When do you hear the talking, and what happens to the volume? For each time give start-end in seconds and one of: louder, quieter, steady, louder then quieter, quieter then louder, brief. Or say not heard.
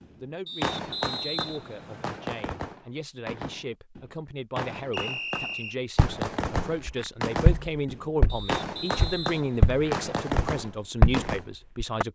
0.2-12.1 louder.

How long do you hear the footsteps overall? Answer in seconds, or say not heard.
6 s.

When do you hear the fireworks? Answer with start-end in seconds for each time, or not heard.
0.0-11.4.